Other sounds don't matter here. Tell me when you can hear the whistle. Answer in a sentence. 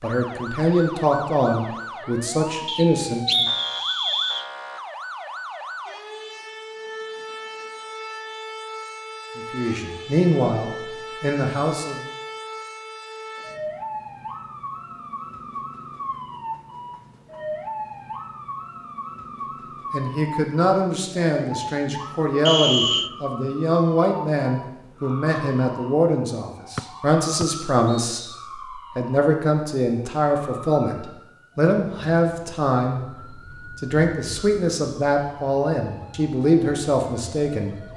The whistle can be heard from 2.6 to 4.5 s, from 22.4 to 23.1 s and from 27.4 to 28.4 s.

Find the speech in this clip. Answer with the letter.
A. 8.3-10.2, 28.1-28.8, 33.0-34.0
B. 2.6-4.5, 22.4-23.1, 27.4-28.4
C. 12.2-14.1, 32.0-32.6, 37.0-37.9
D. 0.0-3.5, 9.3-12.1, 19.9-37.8
D.